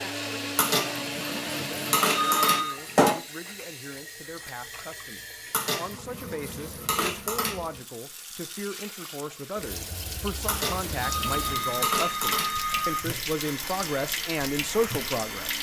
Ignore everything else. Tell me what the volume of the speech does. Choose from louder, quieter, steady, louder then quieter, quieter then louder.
louder.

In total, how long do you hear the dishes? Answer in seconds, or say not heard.
7 s.